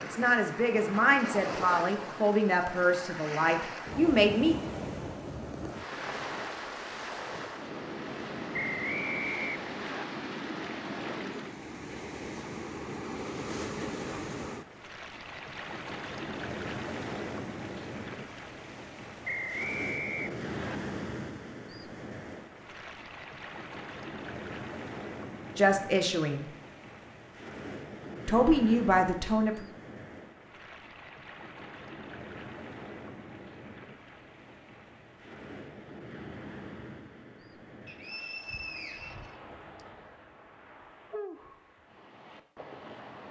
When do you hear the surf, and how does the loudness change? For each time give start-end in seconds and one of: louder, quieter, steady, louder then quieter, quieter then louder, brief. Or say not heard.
0.0-43.2 quieter.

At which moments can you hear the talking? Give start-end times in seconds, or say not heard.
0.0-4.5, 25.6-26.4, 28.2-29.6.